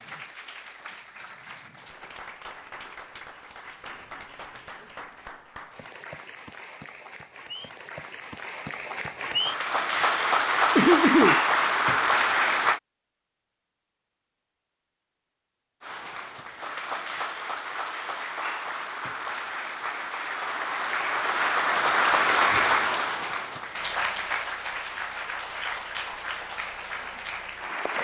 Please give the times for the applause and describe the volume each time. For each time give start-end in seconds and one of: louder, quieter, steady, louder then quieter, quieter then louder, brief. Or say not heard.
0.0-12.8 louder
15.8-27.9 louder then quieter.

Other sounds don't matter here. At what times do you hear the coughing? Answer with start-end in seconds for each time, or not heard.
10.8-11.4.